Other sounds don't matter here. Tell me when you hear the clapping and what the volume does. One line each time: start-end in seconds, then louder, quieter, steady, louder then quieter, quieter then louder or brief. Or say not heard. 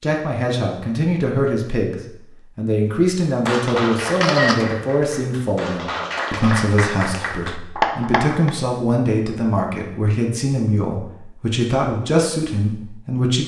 3.5-8.6 quieter then louder.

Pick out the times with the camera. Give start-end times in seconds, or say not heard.
4.2-4.8.